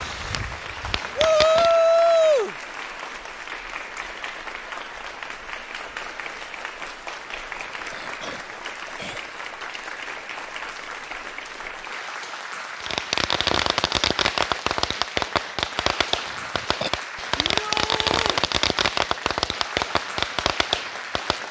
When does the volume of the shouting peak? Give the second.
2 s.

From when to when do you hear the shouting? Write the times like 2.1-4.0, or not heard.
1.1-2.5, 17.4-18.4.